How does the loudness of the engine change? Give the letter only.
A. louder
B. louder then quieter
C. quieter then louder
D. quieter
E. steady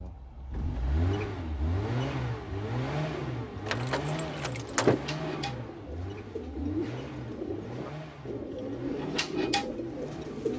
D.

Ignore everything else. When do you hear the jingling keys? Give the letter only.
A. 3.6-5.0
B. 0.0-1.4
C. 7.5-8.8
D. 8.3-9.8
A.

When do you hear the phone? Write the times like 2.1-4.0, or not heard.
not heard.